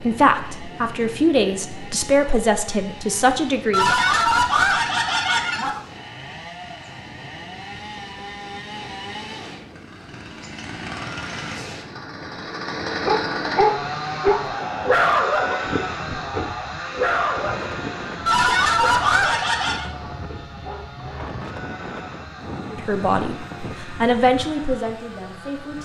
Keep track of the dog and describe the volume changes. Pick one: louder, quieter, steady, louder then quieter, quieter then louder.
quieter.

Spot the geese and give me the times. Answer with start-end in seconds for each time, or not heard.
3.7-5.8, 18.2-19.9.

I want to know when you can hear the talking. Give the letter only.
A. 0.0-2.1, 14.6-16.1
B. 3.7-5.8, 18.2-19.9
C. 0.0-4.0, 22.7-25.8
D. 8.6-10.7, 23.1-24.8
C.